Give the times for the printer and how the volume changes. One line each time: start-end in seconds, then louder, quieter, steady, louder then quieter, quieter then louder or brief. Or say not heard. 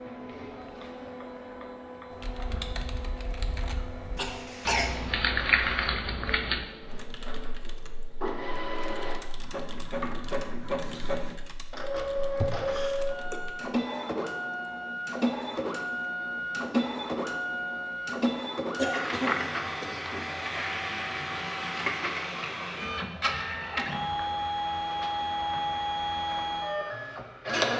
0.0-27.7 louder.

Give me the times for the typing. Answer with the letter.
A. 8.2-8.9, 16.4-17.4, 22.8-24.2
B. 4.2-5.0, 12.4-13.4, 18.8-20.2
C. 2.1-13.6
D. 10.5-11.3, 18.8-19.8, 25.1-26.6
C.